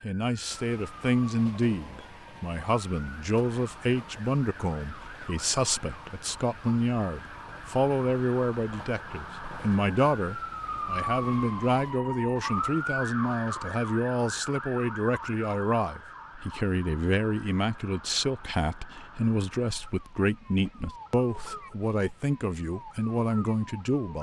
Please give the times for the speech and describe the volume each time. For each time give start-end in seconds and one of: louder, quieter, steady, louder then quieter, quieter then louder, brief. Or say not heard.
0.0-24.1 steady.